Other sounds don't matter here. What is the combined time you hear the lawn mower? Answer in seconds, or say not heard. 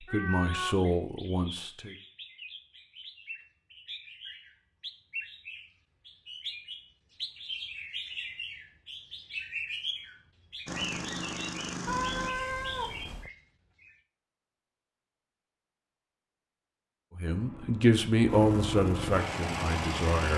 5 s.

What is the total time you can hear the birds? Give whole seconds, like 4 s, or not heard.
14 s.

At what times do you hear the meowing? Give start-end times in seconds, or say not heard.
0.1-0.8, 11.8-13.3.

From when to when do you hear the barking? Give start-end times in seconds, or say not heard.
not heard.